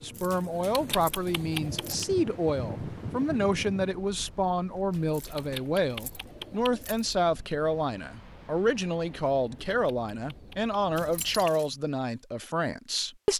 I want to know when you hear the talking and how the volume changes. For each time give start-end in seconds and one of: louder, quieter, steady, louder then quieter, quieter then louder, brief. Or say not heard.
0.0-13.3 steady.